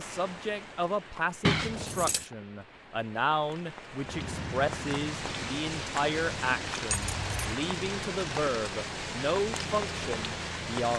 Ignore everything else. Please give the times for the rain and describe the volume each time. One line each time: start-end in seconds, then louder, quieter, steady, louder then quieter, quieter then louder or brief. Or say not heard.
0.0-10.9 louder.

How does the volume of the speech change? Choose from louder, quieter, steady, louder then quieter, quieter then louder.
steady.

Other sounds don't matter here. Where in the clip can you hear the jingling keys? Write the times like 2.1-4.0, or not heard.
1.4-2.2, 6.9-7.5.